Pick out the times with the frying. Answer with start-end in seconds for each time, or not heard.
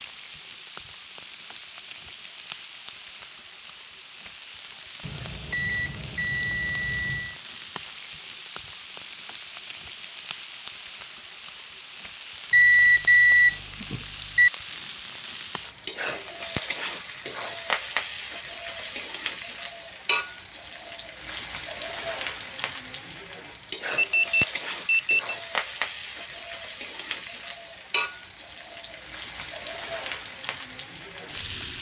0.0-31.7.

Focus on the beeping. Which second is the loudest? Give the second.
13 s.